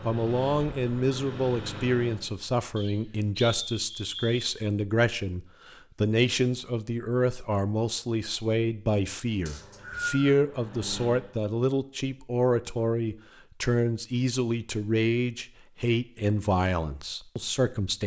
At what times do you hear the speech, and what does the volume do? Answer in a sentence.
You can hear the speech from 0.0 to 18.0 s, at a steady volume.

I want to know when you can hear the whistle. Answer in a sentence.
The whistle can be heard from 2.8 to 4.5 s and from 9.4 to 10.3 s.